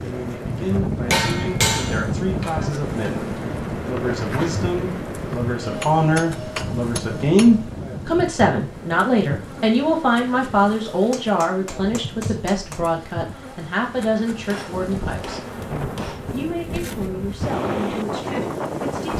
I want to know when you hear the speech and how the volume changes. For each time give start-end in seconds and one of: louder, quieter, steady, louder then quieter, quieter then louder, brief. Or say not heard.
0.0-19.1 louder then quieter.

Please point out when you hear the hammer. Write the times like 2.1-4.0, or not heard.
1.1-3.1, 5.6-7.7, 10.9-12.8, 14.5-16.3.